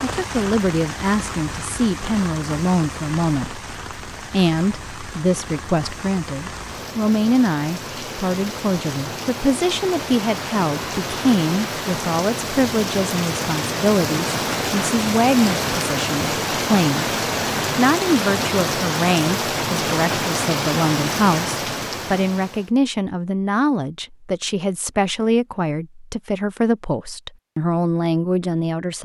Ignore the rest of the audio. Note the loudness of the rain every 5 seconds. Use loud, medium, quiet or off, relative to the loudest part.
medium, medium, loud, loud, loud, off.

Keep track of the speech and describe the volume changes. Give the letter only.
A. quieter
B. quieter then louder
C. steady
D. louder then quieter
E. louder
C.